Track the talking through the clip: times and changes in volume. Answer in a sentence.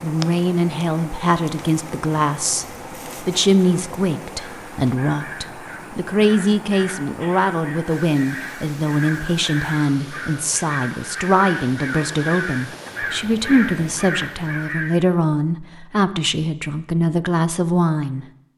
You can hear the talking from 0.0 to 18.2 s, at a steady volume.